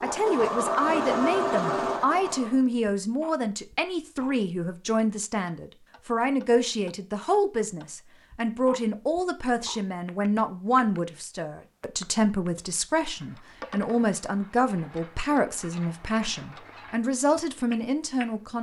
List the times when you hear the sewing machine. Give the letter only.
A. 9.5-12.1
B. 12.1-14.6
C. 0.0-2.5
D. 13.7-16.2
C.